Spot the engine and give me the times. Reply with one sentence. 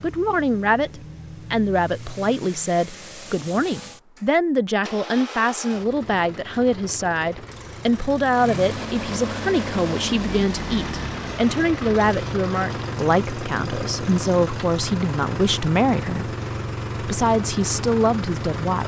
The engine can be heard from 0.0 to 18.8 s.